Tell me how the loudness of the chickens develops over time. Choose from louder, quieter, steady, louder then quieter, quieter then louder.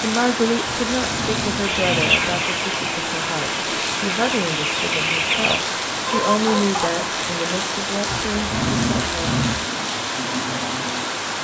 quieter then louder.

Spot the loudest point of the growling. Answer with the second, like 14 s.
9 s.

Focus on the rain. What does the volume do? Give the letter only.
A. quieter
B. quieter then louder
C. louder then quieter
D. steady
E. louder
D.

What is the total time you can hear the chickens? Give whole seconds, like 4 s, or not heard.
5 s.